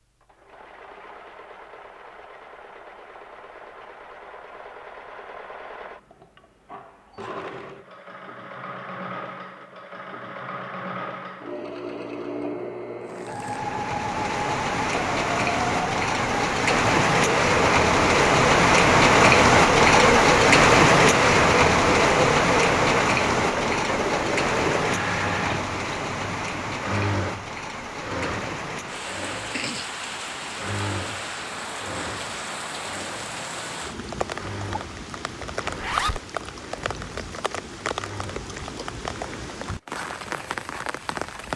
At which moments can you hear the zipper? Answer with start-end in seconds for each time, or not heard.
35.6-36.2.